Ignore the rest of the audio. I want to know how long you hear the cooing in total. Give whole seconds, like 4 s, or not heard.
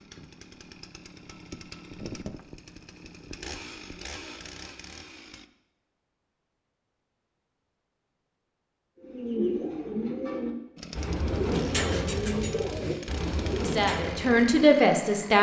6 s.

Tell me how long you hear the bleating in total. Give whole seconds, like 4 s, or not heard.
not heard.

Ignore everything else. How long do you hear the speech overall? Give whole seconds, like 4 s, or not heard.
2 s.